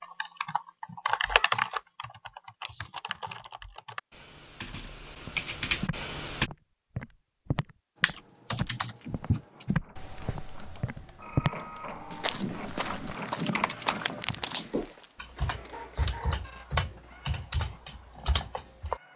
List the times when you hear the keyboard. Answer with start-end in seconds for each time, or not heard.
0.0-6.5, 8.0-19.0.